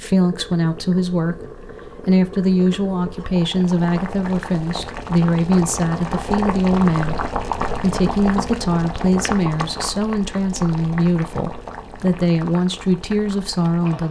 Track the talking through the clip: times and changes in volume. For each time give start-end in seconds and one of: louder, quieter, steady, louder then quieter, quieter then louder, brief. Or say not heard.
0.0-14.0 steady.